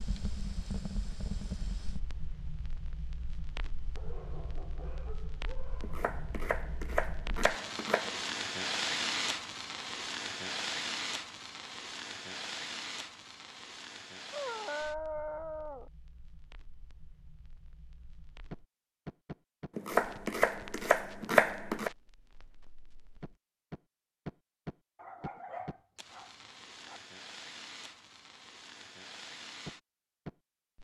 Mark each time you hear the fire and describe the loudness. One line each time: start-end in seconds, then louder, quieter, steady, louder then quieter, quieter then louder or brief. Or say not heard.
0.0-30.7 louder then quieter.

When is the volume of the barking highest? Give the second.
15 s.